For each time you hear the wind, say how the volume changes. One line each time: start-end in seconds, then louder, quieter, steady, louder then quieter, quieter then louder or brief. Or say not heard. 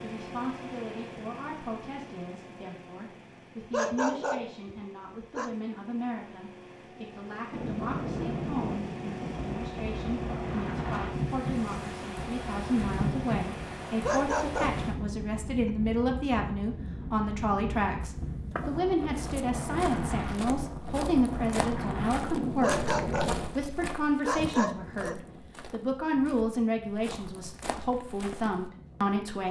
7.5-29.4 quieter.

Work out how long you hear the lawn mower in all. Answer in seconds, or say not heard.
15 s.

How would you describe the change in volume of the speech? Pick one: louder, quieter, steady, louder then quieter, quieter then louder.
louder.